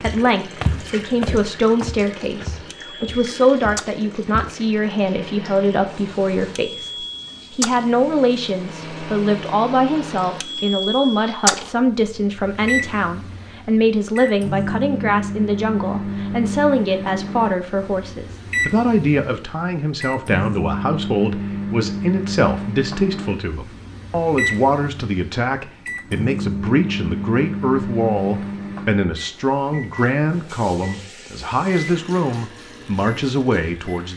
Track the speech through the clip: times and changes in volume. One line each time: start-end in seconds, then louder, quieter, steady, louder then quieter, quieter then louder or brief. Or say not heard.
0.0-34.1 steady.